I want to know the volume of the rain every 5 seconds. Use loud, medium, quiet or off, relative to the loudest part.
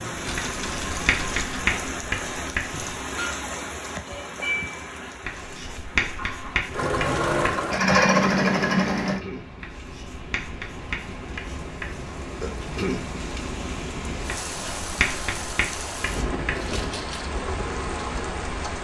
loud, medium, loud, loud.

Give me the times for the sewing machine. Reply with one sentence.
You can hear the sewing machine from 0.0 to 1.6 s, from 6.7 to 9.2 s and from 16.5 to 18.7 s.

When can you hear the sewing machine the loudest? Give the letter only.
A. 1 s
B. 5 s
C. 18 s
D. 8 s
D.